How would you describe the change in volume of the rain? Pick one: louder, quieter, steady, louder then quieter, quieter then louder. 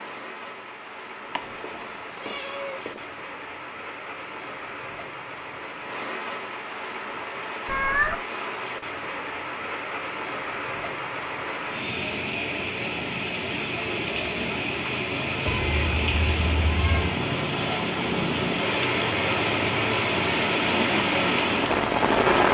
louder.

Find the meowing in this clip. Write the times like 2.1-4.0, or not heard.
1.4-3.0, 7.7-8.2, 15.4-17.1.